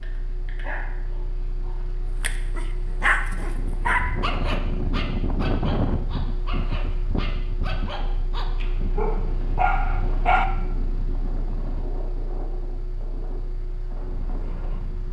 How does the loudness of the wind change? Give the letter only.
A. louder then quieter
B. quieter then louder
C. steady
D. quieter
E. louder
D.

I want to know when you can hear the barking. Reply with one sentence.
The barking can be heard from 0.0 to 10.4 s.